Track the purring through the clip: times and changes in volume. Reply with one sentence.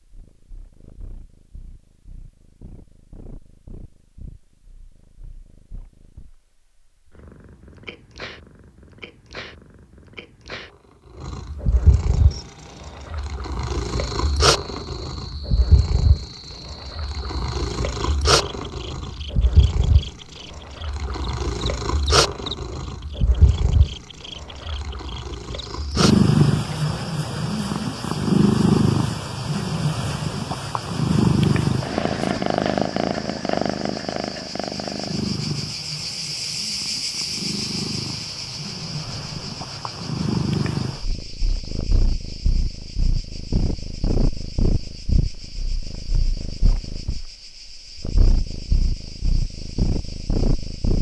The purring can be heard from 0.0 to 50.9 s, getting louder then quieter.